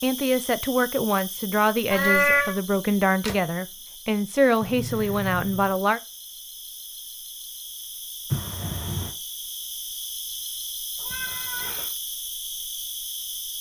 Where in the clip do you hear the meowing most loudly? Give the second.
2 s.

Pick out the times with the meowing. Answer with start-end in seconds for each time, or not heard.
1.9-2.6, 4.6-5.7, 10.9-11.9.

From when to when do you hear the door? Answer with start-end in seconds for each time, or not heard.
2.7-3.4, 8.3-9.2.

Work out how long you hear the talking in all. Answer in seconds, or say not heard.
6 s.